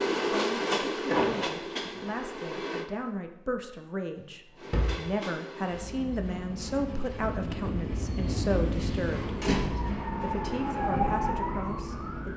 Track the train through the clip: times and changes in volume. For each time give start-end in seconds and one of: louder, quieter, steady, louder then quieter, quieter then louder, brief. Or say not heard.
0.0-2.9 brief
4.5-12.3 louder then quieter.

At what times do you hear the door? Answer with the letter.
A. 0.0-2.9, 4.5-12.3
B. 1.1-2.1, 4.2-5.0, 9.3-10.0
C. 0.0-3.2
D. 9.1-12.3
B.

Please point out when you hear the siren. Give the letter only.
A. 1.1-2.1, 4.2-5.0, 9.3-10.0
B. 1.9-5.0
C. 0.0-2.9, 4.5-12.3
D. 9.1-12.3
D.